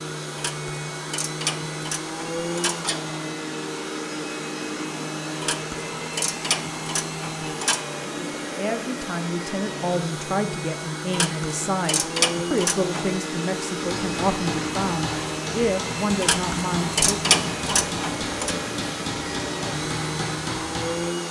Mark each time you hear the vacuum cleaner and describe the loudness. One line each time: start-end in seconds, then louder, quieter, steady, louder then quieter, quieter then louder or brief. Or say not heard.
0.0-21.2 steady.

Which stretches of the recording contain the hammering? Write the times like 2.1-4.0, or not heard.
13.8-21.1.